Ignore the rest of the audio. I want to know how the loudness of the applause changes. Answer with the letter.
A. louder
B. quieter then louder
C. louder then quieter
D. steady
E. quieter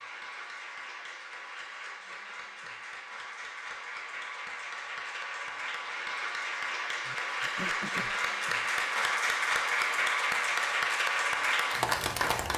A.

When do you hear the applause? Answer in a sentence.
You can hear the applause from 0.0 to 12.5 s.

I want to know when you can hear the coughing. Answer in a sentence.
You can hear the coughing from 7.0 to 8.2 s.